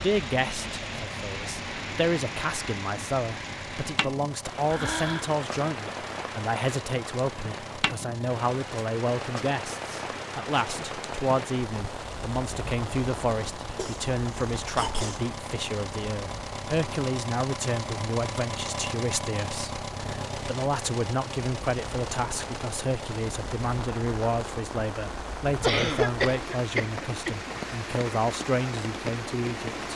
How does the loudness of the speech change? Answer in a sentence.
The volume of the speech stays about the same.